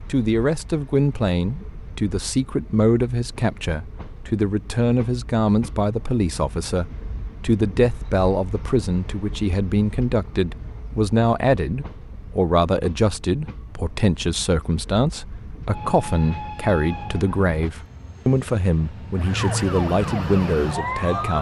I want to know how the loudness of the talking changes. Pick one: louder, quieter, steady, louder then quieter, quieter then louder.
steady.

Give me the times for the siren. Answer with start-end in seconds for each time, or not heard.
19.1-21.3.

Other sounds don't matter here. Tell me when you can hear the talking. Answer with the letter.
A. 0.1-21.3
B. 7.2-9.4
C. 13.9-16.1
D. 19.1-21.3
A.